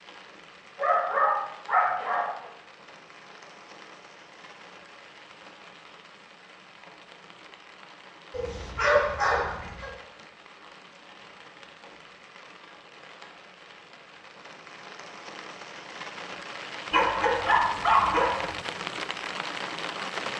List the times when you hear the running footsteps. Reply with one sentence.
You can't hear the running footsteps here.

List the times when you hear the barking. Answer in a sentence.
You can hear the barking from 0.8 to 2.3 s, from 8.3 to 9.9 s and from 16.9 to 18.6 s.